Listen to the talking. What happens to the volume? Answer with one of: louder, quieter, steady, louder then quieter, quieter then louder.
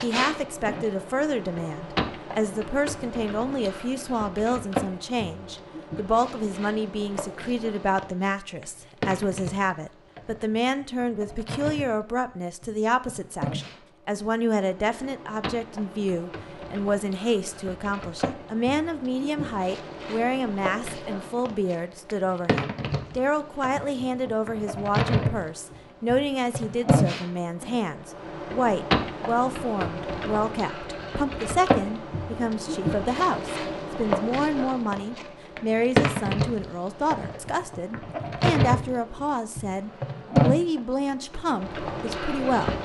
steady.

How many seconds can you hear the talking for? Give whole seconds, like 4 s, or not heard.
43 s.